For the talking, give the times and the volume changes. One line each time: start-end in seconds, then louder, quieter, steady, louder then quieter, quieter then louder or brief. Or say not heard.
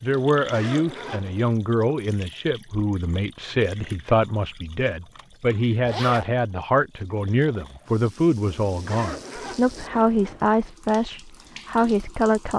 0.0-12.5 steady.